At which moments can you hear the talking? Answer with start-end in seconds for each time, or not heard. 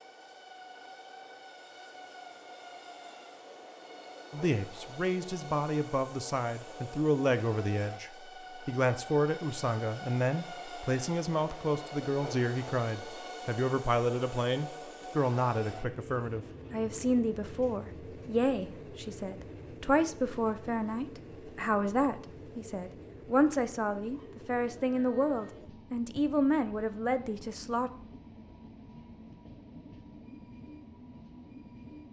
4.3-27.9.